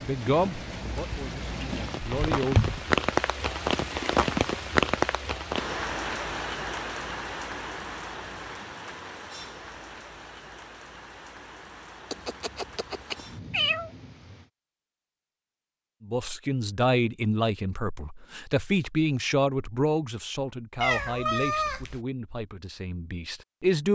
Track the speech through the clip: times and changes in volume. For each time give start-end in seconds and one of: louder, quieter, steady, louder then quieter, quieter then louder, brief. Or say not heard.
0.0-2.6 brief
16.0-23.8 quieter.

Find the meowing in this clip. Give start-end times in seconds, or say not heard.
2.0-3.0, 12.1-13.9, 20.8-22.0.